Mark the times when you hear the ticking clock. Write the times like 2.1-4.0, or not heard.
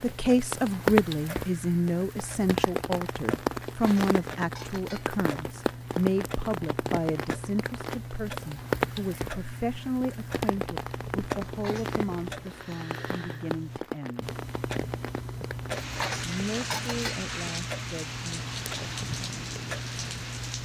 0.0-20.6.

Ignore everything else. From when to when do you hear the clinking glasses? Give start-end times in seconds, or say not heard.
3.6-5.2, 11.4-12.0, 15.8-17.2.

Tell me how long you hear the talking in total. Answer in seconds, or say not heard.
18 s.